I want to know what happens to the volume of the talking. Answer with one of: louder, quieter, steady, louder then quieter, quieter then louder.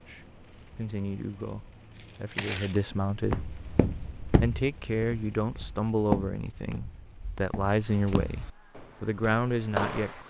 louder.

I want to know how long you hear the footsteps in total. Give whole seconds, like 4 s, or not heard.
8 s.